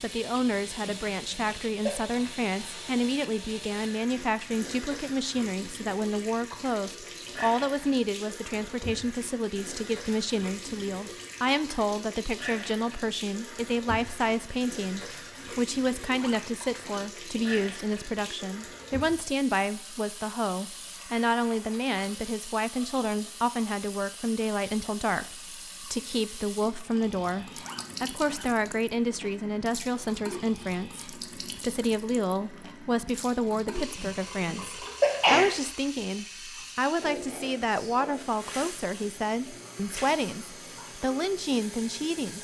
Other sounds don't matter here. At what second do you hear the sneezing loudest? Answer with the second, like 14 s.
35 s.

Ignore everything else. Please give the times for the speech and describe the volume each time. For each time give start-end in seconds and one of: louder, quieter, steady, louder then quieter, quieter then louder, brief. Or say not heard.
0.0-42.3 steady.